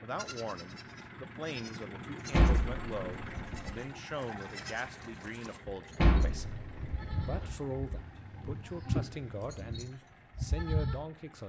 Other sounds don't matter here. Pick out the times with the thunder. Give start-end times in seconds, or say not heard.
6.3-9.9.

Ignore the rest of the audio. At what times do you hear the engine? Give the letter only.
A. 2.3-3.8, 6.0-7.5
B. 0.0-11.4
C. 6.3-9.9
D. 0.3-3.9
B.